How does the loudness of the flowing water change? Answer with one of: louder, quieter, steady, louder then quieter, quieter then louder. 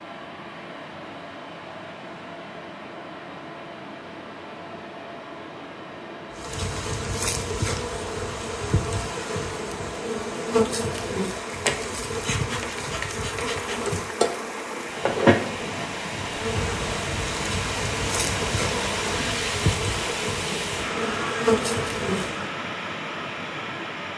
louder.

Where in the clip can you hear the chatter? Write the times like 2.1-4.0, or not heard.
not heard.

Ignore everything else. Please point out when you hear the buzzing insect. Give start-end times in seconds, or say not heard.
6.3-22.4.